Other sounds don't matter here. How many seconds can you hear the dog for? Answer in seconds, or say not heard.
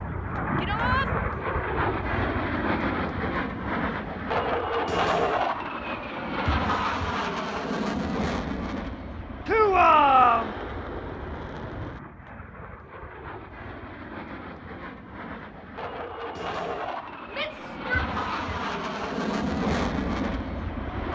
not heard.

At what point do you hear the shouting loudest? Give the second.
10 s.